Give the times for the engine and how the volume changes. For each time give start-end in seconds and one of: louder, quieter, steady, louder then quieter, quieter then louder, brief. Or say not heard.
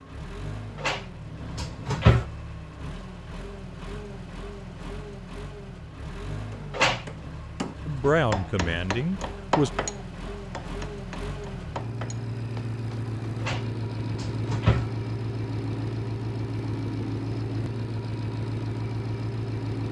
0.0-19.8 louder.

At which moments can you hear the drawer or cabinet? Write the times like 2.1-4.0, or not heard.
0.8-2.2, 6.7-7.3, 13.4-14.9.